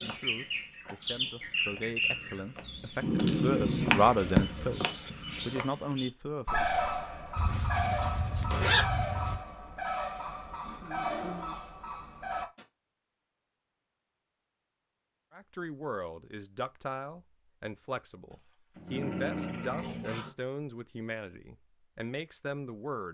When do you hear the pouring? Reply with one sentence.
You can't hear the pouring here.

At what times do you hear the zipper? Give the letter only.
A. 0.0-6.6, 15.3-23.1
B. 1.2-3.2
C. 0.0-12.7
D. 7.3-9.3
D.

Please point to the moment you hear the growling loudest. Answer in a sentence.
The volume of the growling peaks at 3 seconds.